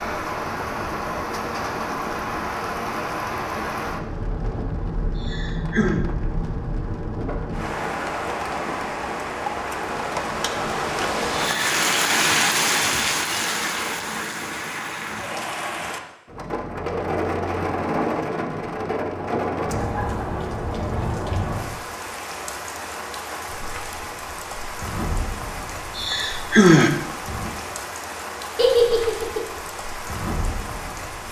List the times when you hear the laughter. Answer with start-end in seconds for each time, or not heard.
28.6-29.4.